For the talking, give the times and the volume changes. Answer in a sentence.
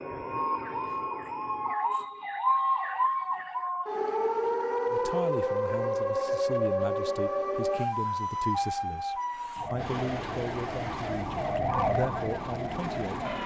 The talking can be heard from 4.9 to 13.2 s, at a steady volume.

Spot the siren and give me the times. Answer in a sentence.
You can hear the siren from 0.0 to 13.4 s.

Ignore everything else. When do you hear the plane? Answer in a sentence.
You can hear the plane from 0.0 to 1.8 s and from 9.8 to 13.4 s.